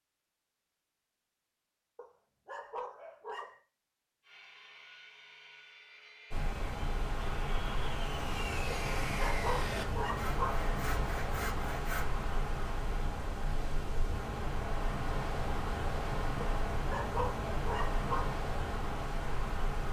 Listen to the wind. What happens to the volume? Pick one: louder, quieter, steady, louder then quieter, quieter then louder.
steady.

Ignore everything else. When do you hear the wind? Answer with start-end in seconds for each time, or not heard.
6.3-19.8.